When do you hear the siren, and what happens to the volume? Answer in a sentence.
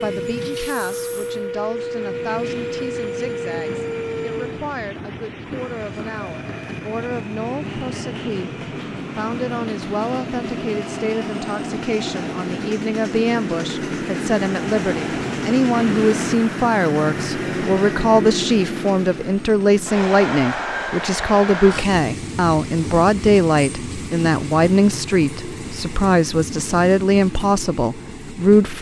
You can hear the siren from 0.0 to 4.6 s, at a steady volume.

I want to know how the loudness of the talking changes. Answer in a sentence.
The loudness of the talking goes up.